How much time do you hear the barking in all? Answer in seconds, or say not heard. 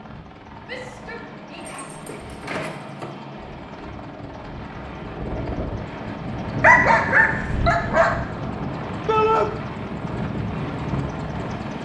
3 s.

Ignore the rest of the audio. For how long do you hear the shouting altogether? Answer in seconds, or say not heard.
2 s.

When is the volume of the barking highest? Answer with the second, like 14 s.
7 s.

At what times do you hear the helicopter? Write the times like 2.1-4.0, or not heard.
0.0-11.8.